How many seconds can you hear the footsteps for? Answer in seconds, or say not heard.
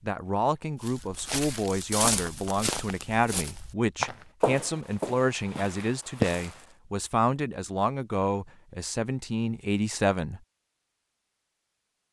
6 s.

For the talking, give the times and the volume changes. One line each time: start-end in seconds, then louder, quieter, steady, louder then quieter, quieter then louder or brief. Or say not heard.
0.0-10.4 steady.